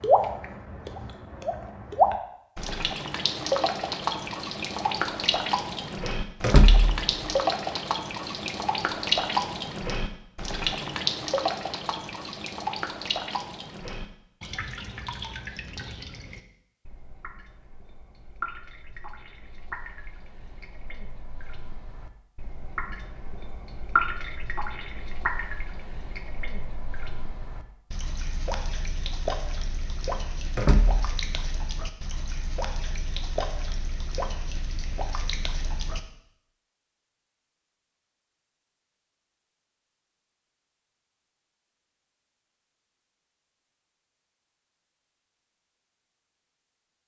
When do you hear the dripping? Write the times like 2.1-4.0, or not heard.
0.0-36.0.